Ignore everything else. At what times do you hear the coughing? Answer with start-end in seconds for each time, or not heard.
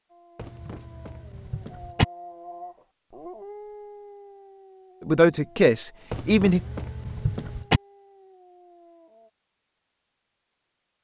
0.3-2.0, 6.1-7.8.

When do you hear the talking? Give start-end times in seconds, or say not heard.
5.0-6.6.